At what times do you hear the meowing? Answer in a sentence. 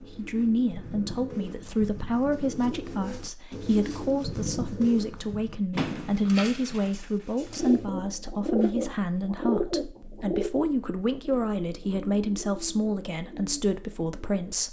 You can't hear the meowing here.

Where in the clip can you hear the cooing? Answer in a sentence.
The cooing can be heard from 0.0 to 5.7 s and from 7.5 to 14.6 s.